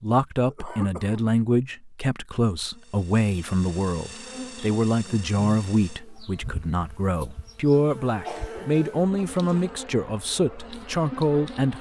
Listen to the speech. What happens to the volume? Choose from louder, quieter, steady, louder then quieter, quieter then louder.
steady.